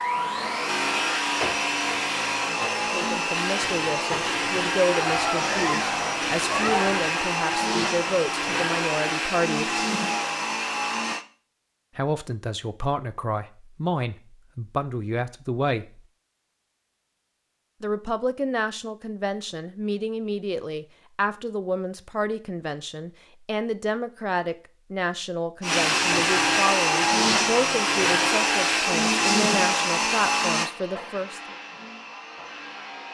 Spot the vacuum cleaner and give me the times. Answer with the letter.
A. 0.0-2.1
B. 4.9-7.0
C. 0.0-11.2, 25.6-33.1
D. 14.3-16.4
C.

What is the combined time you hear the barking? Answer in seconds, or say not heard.
2 s.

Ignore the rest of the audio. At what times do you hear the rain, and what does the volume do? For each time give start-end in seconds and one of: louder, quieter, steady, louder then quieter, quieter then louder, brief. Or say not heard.
not heard.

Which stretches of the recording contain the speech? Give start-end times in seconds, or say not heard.
2.8-9.8, 11.9-16.0, 17.8-31.4.